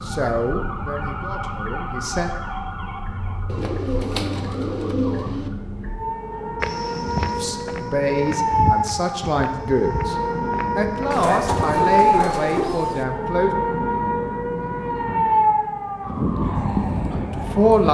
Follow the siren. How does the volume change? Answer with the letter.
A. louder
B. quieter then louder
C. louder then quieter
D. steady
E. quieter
A.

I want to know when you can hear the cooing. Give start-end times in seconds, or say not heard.
3.5-5.5, 11.1-13.1.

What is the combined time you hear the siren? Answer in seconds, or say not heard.
18 s.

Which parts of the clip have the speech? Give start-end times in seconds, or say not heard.
0.1-2.3, 7.4-10.2, 10.8-13.5, 17.4-17.8.